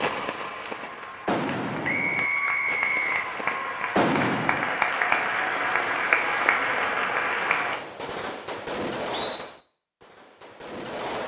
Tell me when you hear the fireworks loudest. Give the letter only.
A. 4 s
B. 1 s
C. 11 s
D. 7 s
A.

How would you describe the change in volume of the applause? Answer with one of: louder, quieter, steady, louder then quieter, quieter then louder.
louder.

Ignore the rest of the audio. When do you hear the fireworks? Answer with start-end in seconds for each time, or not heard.
0.0-4.8, 7.6-11.2.